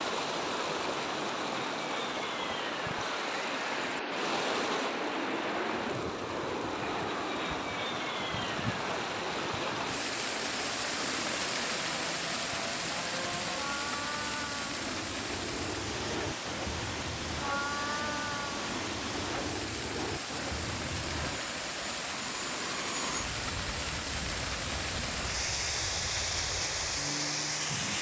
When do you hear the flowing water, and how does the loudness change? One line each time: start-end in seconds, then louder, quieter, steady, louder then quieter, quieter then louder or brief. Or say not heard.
0.0-27.9 steady.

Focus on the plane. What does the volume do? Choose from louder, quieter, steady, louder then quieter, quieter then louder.
quieter.